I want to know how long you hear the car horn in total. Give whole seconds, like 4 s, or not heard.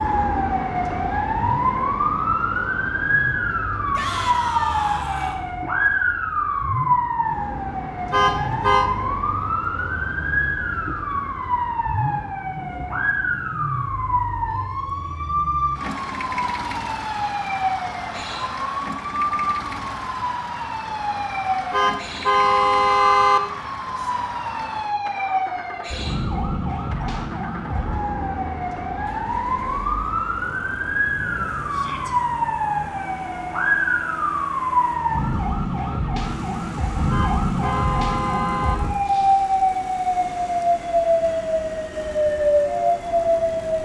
4 s.